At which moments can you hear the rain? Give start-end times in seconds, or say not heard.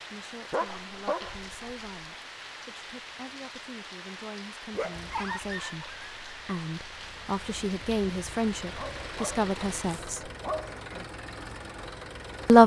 0.0-10.1.